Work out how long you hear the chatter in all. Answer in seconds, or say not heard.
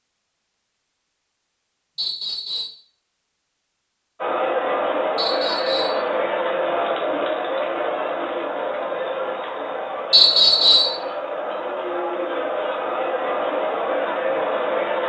11 s.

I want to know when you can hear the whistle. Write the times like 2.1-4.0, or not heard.
1.9-2.7, 5.2-6.0, 10.1-10.9.